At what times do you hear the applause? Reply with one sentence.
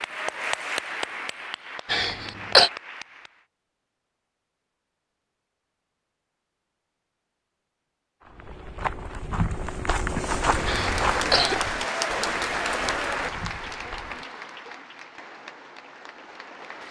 You can hear the applause from 0.0 to 3.5 s and from 10.3 to 16.8 s.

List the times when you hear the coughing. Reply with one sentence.
The coughing can be heard from 1.9 to 2.7 s and from 10.7 to 11.6 s.